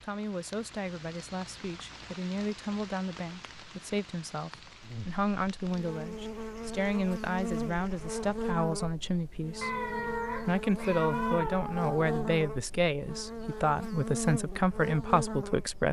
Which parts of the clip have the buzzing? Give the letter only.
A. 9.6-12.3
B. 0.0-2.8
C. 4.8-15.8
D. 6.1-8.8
C.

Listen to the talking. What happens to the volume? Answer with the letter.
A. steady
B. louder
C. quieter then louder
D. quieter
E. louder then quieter
B.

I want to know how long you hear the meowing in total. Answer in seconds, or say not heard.
3 s.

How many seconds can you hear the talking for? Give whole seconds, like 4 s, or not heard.
16 s.